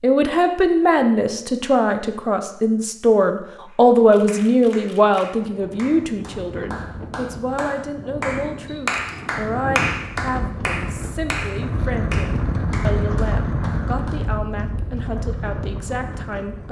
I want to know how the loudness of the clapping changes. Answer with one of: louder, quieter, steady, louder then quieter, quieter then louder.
louder then quieter.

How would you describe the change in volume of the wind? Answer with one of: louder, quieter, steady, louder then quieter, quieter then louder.
louder then quieter.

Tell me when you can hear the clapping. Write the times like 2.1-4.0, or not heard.
3.6-14.2.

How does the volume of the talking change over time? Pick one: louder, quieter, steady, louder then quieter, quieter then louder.
quieter.